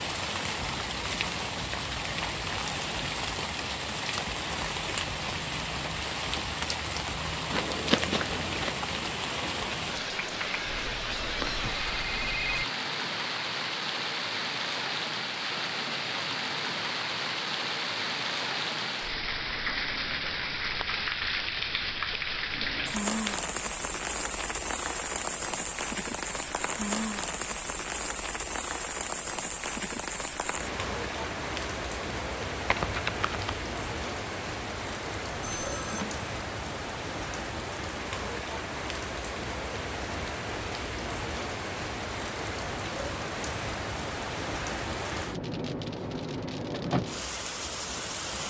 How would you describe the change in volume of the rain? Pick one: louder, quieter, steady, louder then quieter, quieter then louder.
steady.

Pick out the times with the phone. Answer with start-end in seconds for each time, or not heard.
10.7-12.7, 35.4-36.2.